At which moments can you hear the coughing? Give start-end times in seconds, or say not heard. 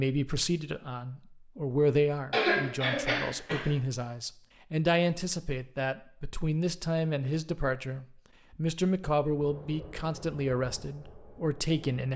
2.3-3.8.